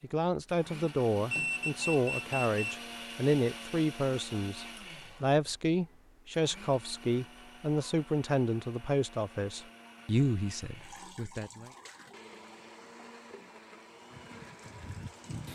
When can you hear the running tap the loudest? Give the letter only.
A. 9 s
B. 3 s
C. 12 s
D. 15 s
D.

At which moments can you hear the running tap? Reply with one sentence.
The running tap can be heard from 10.8 to 15.5 s.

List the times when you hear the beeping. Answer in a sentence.
You can hear the beeping from 1.3 to 2.8 s.